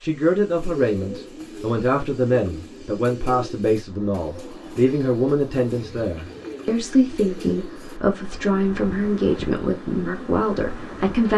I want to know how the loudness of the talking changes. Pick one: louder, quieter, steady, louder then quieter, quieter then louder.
steady.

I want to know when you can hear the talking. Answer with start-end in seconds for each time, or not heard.
0.0-11.3.